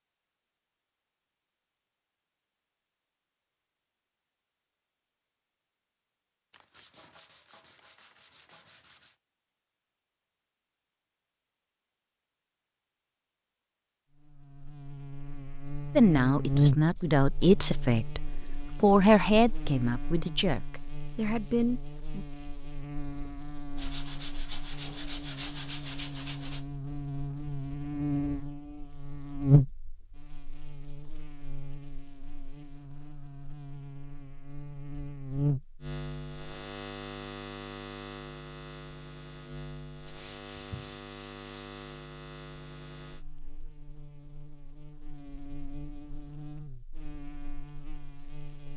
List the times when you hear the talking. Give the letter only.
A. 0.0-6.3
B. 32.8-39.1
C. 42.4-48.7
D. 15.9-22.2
D.